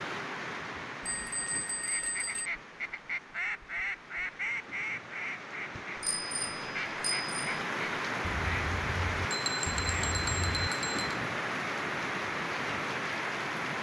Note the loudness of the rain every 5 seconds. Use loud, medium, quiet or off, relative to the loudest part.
medium, loud, loud.